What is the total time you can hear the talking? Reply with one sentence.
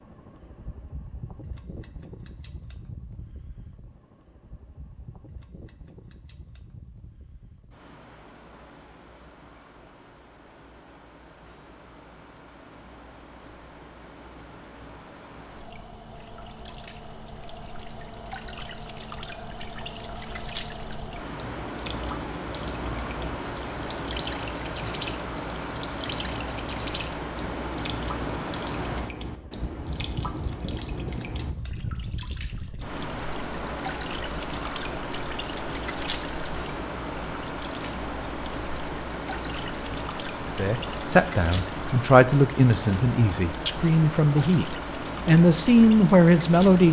The talking can be heard for 6 seconds in total.